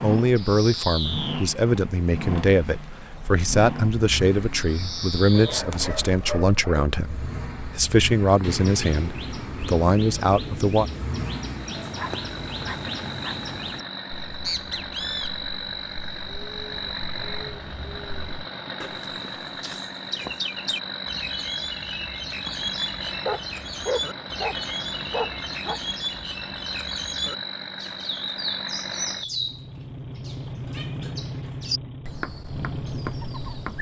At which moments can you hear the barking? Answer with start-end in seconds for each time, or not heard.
5.3-6.9, 11.9-13.3, 23.2-25.8.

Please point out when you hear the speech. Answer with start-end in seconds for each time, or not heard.
0.0-10.8.